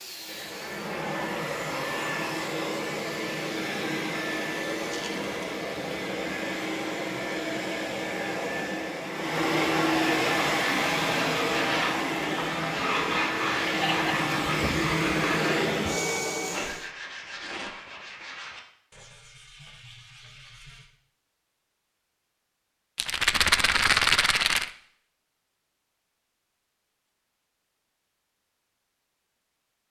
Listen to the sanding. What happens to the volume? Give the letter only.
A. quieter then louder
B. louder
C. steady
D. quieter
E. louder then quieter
D.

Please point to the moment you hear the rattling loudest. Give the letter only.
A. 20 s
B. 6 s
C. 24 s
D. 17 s
C.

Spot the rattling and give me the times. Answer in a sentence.
You can hear the rattling from 4.8 to 5.3 s, from 16.4 to 18.2 s and from 22.9 to 24.7 s.